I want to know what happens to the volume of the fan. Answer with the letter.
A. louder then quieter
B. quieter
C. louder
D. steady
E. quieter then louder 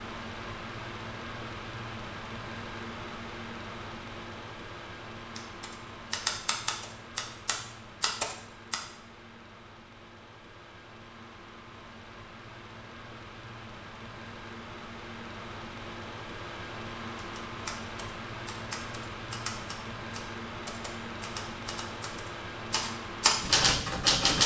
E.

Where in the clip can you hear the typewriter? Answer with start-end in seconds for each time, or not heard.
5.3-8.8, 17.1-24.4.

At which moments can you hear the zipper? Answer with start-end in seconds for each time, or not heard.
not heard.